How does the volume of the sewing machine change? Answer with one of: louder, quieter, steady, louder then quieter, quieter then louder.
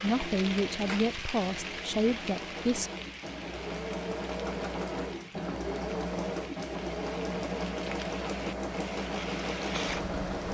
louder.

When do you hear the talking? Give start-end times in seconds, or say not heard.
0.0-2.9.